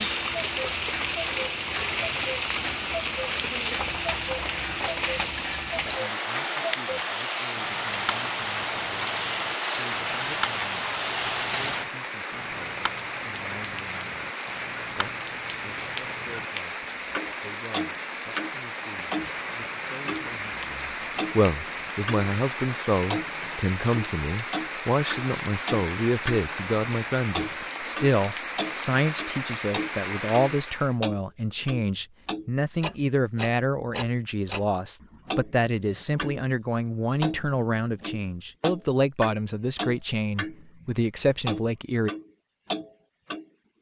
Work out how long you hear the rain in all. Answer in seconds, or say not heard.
31 s.